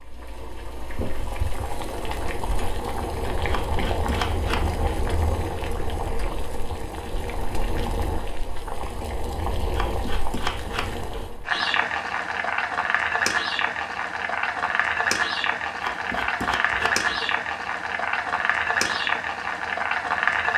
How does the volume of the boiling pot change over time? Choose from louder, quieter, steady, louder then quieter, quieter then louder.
louder.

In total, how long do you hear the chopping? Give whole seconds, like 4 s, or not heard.
4 s.